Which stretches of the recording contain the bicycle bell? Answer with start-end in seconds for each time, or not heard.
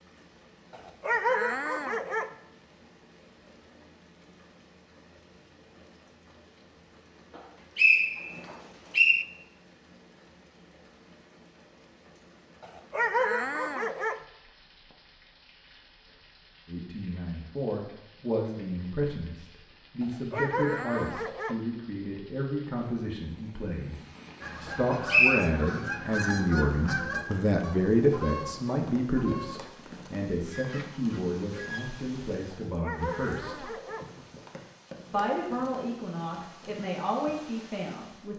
not heard.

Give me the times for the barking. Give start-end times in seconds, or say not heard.
0.7-2.4, 12.6-14.2, 20.0-21.6, 32.5-34.1.